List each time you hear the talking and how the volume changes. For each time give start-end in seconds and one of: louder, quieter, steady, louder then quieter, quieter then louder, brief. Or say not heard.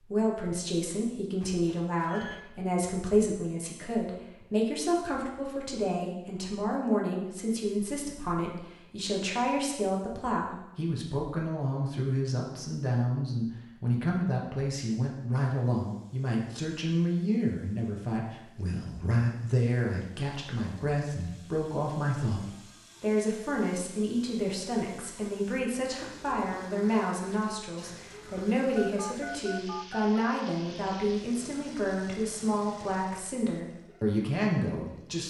0.0-35.2 steady.